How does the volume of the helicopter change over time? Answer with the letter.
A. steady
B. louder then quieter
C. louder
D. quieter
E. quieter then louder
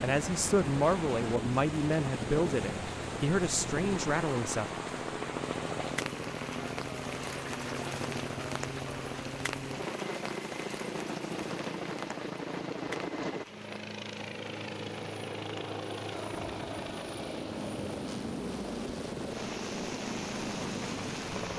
A.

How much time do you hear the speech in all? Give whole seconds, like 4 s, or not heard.
5 s.